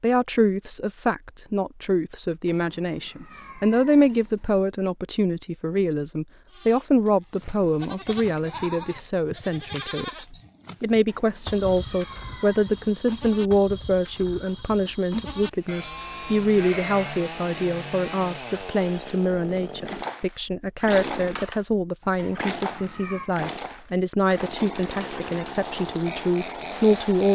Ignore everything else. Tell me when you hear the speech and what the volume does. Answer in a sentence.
You can hear the speech from 0.0 to 27.3 s, at a steady volume.